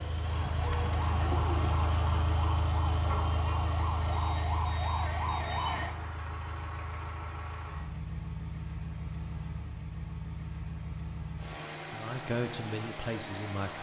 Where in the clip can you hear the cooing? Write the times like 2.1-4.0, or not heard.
0.2-2.2.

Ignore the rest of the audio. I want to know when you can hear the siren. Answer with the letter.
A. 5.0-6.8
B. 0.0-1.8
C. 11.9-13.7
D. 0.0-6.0
D.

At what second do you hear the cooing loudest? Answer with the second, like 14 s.
1 s.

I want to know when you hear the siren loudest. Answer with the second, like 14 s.
5 s.